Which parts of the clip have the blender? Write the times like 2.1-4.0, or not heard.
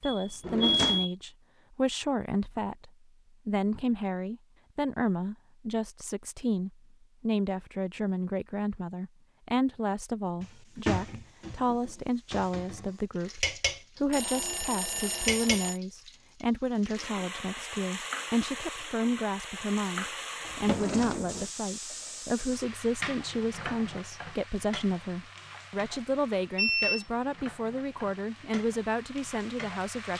not heard.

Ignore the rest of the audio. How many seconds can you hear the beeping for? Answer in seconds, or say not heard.
3 s.